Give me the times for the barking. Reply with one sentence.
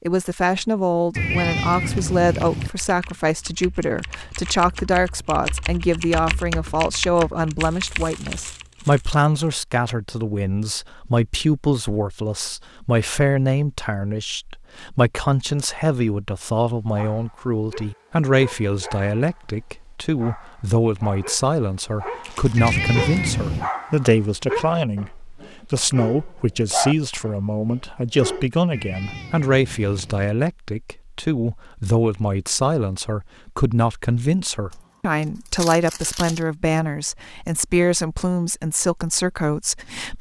You can hear the barking from 16.9 to 28.4 s.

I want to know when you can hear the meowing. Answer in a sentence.
You can hear the meowing from 1.1 to 2.7 s, from 22.6 to 23.7 s and from 28.7 to 30.3 s.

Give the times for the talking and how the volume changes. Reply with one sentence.
The talking can be heard from 0.0 to 40.1 s, at a steady volume.